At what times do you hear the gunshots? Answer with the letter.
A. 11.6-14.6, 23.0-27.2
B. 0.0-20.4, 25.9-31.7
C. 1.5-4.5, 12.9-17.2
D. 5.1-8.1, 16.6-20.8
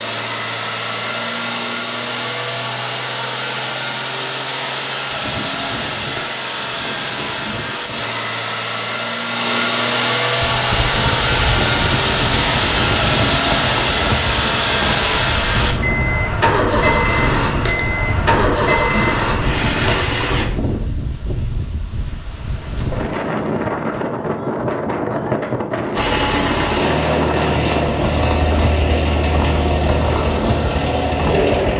D.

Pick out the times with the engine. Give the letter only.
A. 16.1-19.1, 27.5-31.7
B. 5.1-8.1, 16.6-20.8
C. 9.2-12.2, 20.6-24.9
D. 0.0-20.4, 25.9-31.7
D.